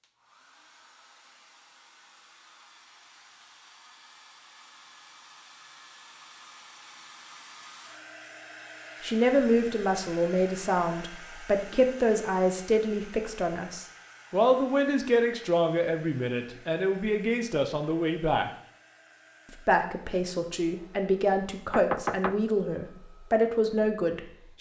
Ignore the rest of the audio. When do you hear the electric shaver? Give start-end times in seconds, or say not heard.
not heard.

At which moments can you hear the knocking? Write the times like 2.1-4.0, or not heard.
21.7-22.4.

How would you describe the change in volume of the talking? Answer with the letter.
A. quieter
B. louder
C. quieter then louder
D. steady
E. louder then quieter
D.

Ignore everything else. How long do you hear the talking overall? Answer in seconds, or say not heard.
14 s.